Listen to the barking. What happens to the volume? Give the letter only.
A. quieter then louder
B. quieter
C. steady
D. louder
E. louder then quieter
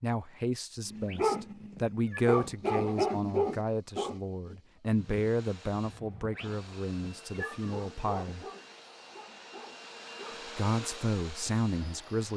B.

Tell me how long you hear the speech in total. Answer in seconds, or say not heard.
10 s.